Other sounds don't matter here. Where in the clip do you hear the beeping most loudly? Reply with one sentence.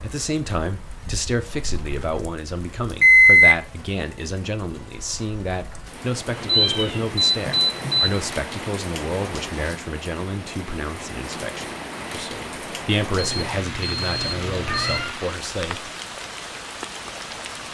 The volume of the beeping peaks at 3 seconds.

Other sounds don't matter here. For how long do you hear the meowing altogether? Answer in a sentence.
You can hear the meowing for 2 seconds altogether.